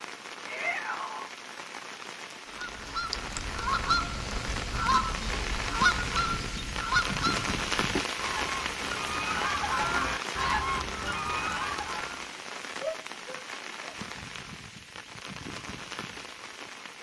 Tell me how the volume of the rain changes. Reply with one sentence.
The loudness of the rain goes up, then down.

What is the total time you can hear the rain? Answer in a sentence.
The rain can be heard for 17 seconds in total.